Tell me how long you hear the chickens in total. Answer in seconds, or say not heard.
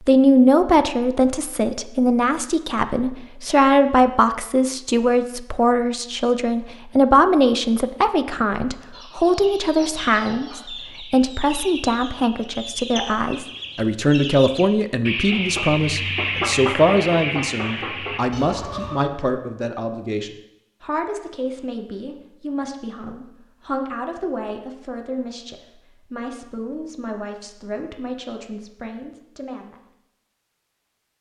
10 s.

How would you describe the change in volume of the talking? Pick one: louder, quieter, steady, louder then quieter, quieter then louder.
quieter.